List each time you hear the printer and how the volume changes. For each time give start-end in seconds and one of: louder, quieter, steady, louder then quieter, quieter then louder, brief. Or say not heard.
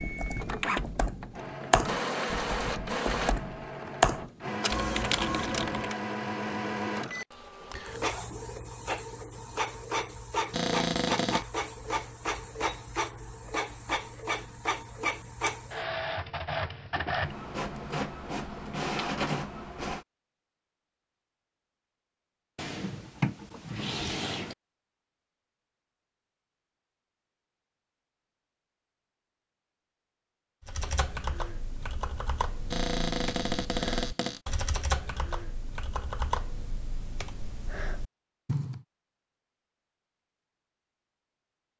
0.0-20.1 steady.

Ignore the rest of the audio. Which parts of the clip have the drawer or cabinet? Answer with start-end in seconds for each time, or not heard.
10.5-11.4, 22.6-24.6, 32.7-34.4.